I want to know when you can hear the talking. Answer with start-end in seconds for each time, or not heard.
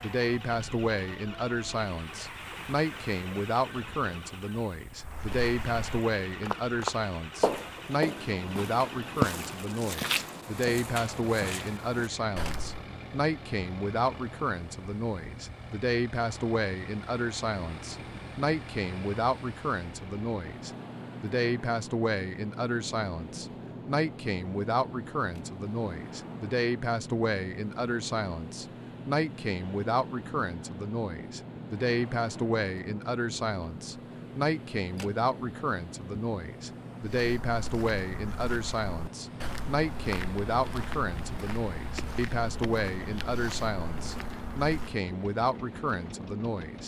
0.0-46.8.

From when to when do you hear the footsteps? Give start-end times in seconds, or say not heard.
5.0-12.8, 37.0-45.0.